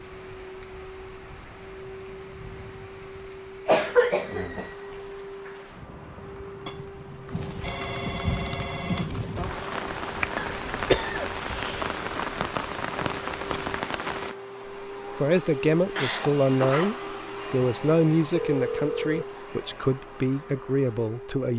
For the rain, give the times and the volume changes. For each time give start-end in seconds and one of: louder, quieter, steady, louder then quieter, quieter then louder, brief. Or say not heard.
0.0-14.3 louder.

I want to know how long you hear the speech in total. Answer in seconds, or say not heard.
6 s.